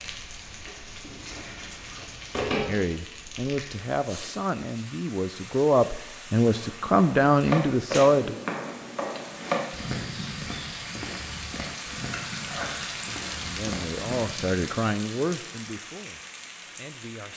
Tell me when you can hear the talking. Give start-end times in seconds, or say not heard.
2.6-8.3, 13.3-17.3.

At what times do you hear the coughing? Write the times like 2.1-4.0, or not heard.
not heard.